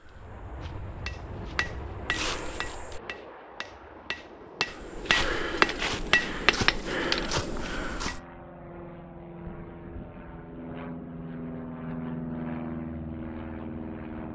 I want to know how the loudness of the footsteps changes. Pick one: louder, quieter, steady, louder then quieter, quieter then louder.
louder.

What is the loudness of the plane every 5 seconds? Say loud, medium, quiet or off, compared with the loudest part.
medium, medium, loud.